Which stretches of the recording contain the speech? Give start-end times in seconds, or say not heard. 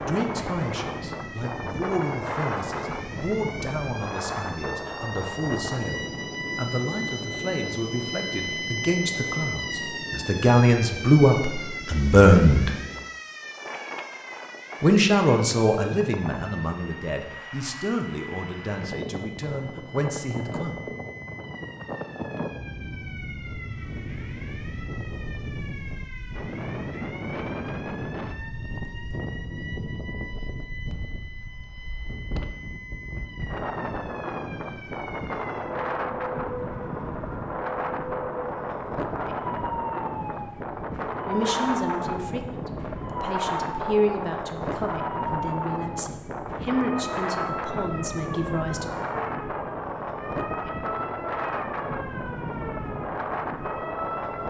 0.0-12.7, 14.8-20.9, 41.2-49.0.